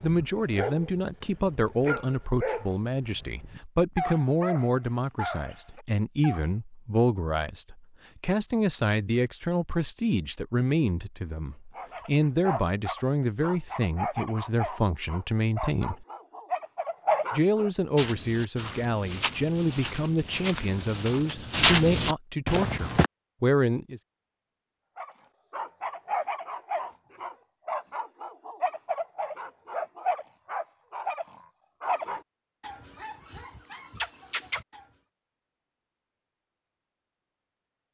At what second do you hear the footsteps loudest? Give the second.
22 s.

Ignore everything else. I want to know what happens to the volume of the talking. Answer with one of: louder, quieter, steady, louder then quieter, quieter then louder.
steady.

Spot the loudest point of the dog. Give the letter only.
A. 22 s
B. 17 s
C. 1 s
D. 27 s
B.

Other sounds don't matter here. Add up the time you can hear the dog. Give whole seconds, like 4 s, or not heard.
22 s.